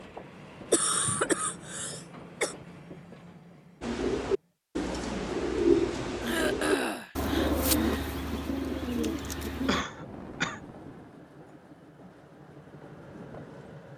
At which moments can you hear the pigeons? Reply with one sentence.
You can hear the pigeons from 3.8 to 9.8 s.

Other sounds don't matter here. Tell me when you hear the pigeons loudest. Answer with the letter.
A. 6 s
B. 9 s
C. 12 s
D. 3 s
A.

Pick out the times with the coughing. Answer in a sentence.
The coughing can be heard from 0.7 to 2.5 s, from 6.2 to 7.2 s and from 9.7 to 10.6 s.